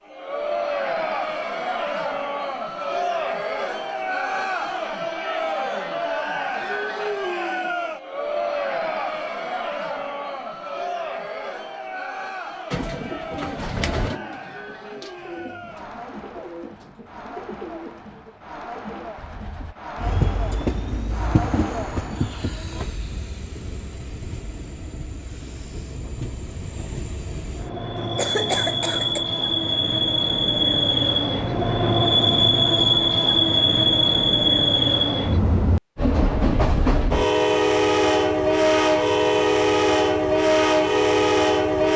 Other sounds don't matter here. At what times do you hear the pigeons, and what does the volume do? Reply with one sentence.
The pigeons can be heard from 12.7 to 19.8 s, getting quieter.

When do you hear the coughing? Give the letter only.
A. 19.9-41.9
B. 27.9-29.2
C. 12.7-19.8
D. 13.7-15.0
B.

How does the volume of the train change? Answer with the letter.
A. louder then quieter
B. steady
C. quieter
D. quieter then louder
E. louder
E.